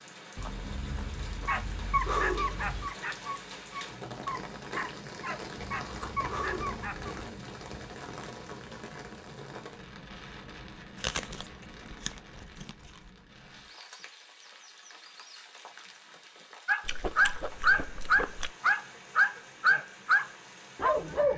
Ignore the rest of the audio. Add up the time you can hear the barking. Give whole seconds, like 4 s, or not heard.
10 s.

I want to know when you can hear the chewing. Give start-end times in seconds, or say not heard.
0.3-3.0, 5.5-7.5, 11.0-12.9, 16.9-18.5.